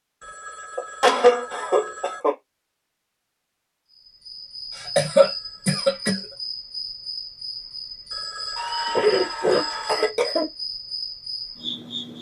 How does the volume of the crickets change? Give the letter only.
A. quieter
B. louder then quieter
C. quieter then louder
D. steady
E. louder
D.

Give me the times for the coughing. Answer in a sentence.
The coughing can be heard from 0.8 to 2.4 s, from 4.8 to 6.2 s and from 8.6 to 10.4 s.